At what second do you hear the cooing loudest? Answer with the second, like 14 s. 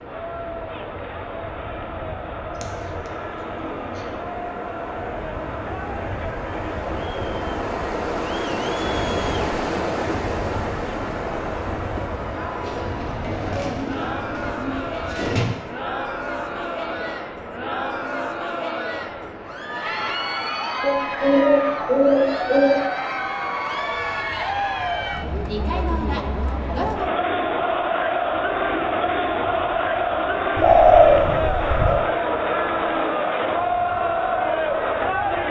31 s.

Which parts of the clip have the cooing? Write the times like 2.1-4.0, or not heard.
2.6-4.0, 12.6-15.6, 20.8-22.9, 30.6-32.1.